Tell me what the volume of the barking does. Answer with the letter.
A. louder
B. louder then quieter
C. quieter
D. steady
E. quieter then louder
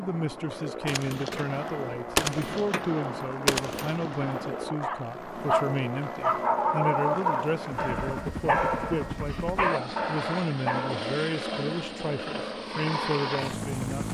E.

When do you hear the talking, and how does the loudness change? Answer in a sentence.
You can hear the talking from 0.0 to 14.0 s, at a steady volume.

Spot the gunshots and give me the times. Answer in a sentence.
The gunshots can be heard from 0.8 to 4.8 s.